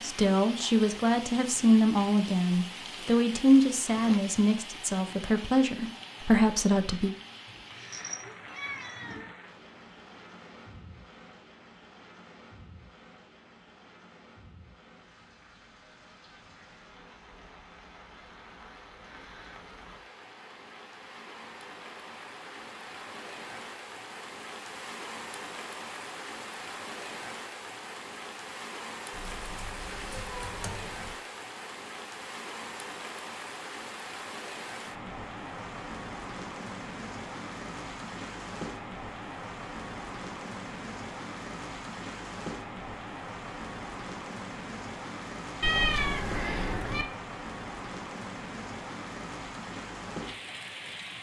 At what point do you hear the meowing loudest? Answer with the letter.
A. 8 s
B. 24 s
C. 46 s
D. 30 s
C.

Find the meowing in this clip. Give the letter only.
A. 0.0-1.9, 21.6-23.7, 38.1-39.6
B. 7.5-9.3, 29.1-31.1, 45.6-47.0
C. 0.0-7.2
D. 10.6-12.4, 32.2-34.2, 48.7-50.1
B.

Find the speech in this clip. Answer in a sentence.
You can hear the speech from 0.0 to 7.2 s.